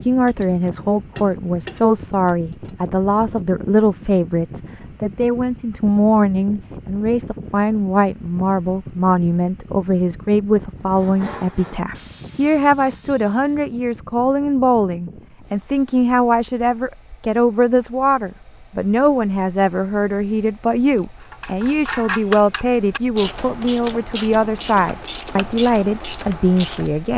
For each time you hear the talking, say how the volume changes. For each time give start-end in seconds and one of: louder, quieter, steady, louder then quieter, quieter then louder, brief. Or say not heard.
0.0-27.1 steady.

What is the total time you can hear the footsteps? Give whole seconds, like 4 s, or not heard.
not heard.